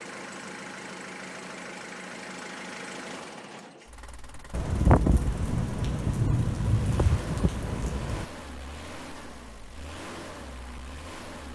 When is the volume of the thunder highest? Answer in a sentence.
The volume of the thunder peaks at 5 seconds.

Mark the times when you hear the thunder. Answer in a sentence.
You can hear the thunder from 4.5 to 8.2 s.